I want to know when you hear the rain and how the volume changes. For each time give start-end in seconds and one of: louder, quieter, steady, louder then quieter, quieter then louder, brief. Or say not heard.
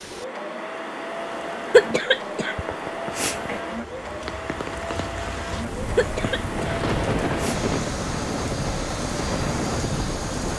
0.0-10.5 louder.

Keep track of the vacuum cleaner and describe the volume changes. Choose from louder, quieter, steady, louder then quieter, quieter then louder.
steady.